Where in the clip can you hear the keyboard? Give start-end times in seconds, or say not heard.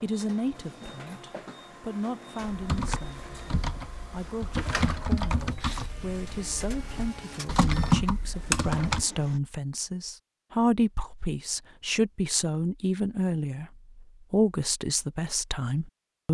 2.5-9.1.